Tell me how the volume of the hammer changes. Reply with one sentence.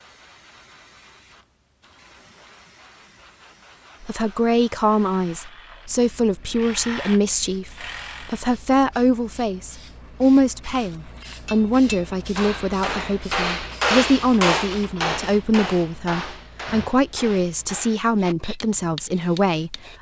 The volume of the hammer goes up, then down.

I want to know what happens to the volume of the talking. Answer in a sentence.
The loudness of the talking stays about the same.